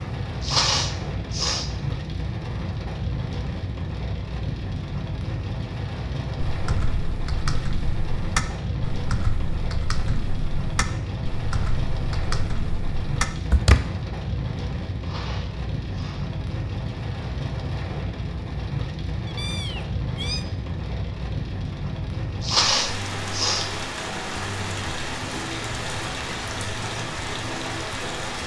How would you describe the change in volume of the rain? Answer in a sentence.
The volume of the rain stays about the same.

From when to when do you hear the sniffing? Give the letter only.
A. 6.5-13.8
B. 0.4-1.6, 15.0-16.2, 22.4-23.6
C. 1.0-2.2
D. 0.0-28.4
B.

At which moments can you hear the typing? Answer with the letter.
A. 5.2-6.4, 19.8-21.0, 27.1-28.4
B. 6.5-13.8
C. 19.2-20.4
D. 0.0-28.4
B.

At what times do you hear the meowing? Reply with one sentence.
You can hear the meowing from 19.2 to 20.4 s.